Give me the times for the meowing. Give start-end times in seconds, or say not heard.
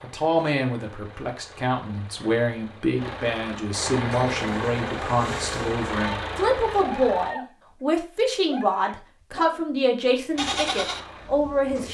not heard.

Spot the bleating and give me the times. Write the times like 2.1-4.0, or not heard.
4.3-6.2, 6.8-7.5, 8.4-9.6, 10.3-11.0.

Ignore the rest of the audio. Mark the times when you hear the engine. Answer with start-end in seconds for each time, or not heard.
0.0-7.3, 10.3-11.9.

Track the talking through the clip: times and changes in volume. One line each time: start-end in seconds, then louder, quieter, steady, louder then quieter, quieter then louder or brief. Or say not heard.
0.0-11.9 steady.